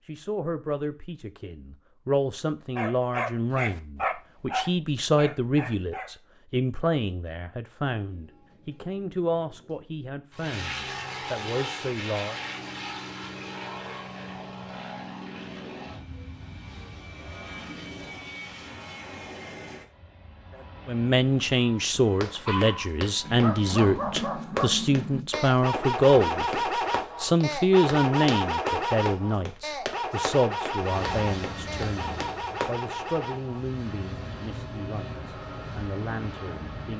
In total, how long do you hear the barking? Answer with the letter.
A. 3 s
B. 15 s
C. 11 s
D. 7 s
B.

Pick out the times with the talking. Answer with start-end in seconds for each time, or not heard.
0.1-12.4, 20.9-26.6, 27.2-36.9.